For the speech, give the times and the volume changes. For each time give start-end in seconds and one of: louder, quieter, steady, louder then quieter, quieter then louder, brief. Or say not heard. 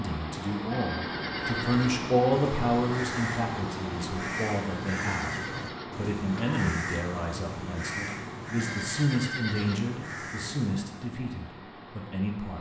0.0-12.5 quieter.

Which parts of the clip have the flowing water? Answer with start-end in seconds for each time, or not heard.
0.0-12.5.